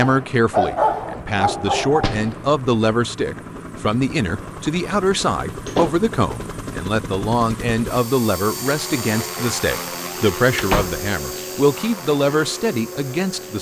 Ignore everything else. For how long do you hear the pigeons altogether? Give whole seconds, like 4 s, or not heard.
not heard.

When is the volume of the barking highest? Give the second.
1 s.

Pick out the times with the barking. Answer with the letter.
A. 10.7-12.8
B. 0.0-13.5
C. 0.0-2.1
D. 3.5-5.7
C.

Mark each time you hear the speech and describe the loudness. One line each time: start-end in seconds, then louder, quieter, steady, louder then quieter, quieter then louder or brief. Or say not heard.
0.0-13.5 steady.